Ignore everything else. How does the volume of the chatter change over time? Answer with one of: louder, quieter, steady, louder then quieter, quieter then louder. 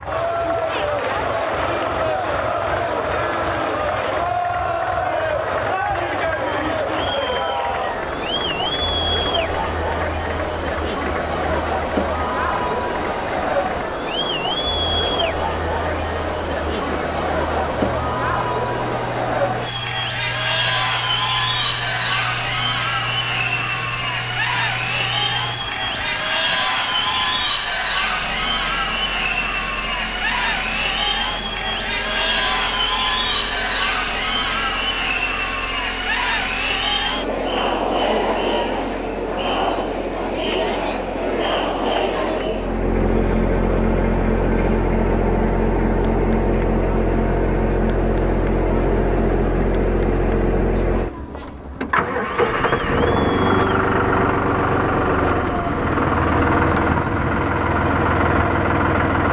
quieter.